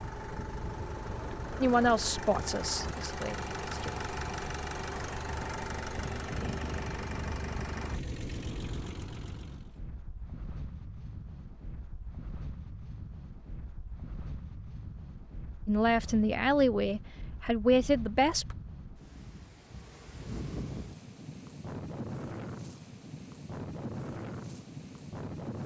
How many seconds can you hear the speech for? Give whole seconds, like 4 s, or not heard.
5 s.